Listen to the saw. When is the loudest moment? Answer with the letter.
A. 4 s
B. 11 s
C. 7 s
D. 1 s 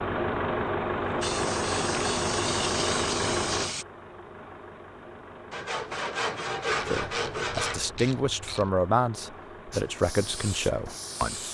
C.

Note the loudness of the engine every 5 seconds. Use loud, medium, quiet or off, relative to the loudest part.
loud, quiet, quiet.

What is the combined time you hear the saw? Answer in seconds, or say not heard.
2 s.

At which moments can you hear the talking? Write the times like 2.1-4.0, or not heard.
6.8-11.4.